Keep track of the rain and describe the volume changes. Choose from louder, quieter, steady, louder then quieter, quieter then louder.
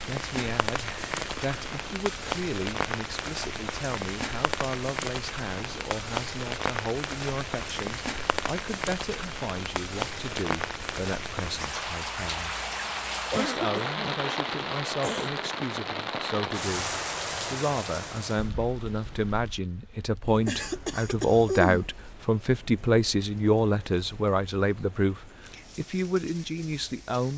quieter.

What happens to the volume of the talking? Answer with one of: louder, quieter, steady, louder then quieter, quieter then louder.
louder.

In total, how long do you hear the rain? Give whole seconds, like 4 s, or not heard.
27 s.